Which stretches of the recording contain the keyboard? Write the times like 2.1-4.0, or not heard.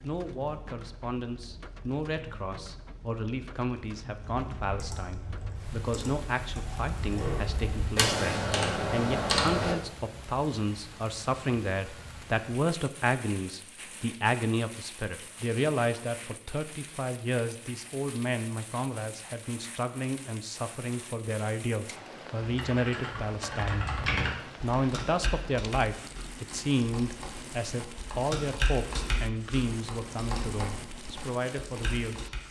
4.2-9.8, 22.4-32.4.